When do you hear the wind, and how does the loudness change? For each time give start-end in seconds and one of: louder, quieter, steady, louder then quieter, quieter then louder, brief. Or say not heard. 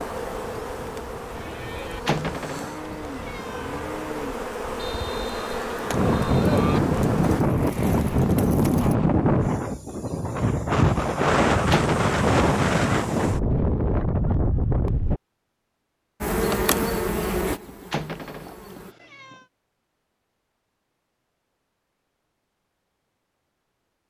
0.0-15.2 louder.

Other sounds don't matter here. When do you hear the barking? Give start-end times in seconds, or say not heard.
not heard.